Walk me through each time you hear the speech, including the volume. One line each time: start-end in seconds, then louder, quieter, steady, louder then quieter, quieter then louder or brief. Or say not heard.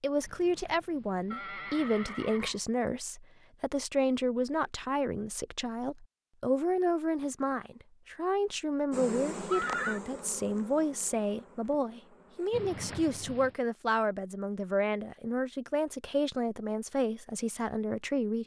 0.0-18.4 steady.